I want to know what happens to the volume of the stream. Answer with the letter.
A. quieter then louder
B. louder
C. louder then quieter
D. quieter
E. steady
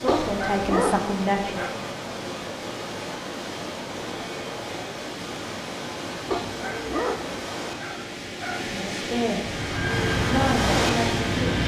B.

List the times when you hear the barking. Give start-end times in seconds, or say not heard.
0.1-1.8, 6.3-8.8.